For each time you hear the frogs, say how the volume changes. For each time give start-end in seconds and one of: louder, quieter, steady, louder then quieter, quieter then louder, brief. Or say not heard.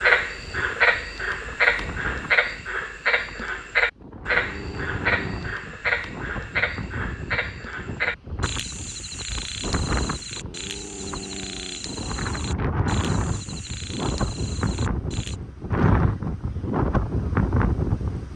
0.0-15.4 quieter.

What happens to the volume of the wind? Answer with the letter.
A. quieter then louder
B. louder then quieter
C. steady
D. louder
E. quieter
D.